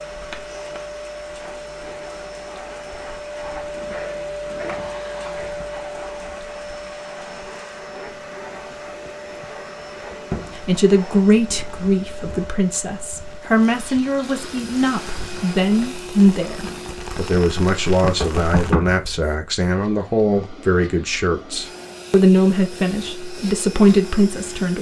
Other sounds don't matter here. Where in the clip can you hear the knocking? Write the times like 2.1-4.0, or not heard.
18.0-19.4.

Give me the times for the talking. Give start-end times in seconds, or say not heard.
10.6-24.7.